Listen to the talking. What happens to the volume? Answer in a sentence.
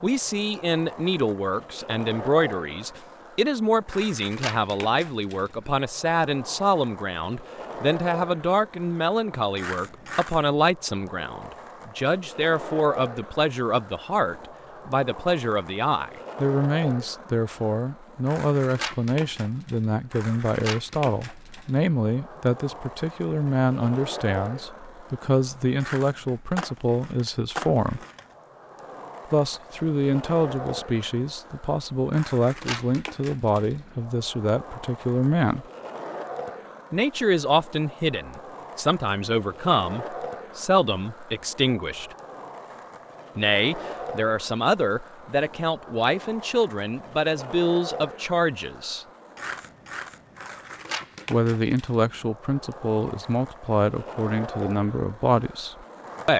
The loudness of the talking stays about the same.